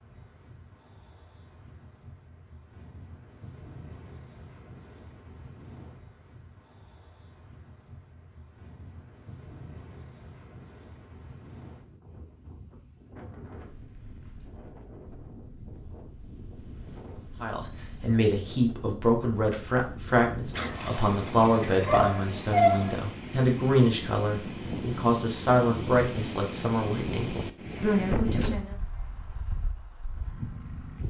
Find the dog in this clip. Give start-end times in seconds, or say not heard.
20.6-22.9.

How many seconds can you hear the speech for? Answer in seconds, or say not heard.
11 s.